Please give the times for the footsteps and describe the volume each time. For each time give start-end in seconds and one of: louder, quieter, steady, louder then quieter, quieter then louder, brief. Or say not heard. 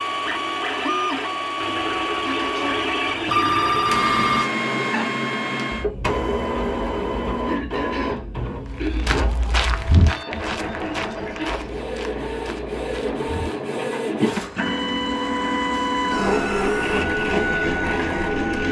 8.7-13.7 quieter.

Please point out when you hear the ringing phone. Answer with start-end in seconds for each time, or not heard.
3.2-4.5.